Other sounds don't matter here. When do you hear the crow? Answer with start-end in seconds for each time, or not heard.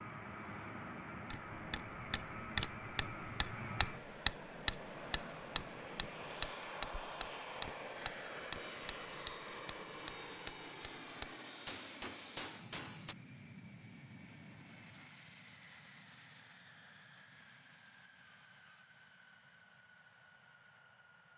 not heard.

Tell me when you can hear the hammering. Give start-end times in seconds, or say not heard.
1.3-13.2.